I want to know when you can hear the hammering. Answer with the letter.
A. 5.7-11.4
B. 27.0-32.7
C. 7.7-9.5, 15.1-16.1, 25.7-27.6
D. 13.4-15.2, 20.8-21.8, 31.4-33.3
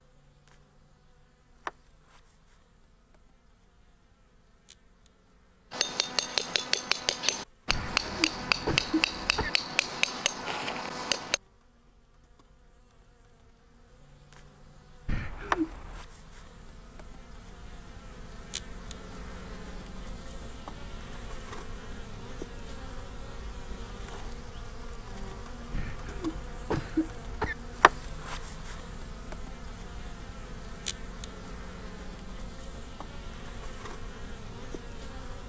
A.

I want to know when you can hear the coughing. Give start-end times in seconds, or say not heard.
7.7-9.5, 15.1-16.1, 25.7-27.6.